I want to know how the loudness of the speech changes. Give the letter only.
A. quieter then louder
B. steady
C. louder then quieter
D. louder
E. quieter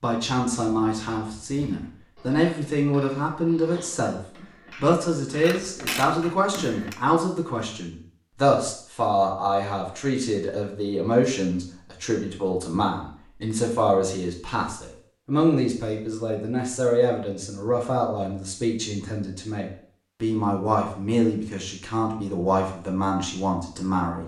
B.